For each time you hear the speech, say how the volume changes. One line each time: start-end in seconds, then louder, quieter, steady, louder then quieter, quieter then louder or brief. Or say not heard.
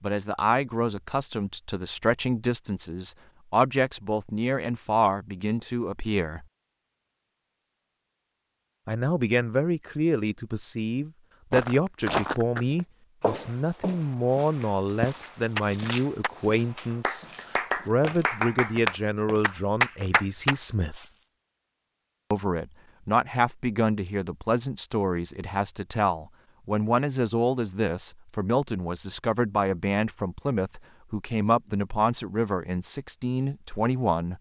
0.0-6.5 steady
8.8-21.0 steady
22.3-34.3 steady.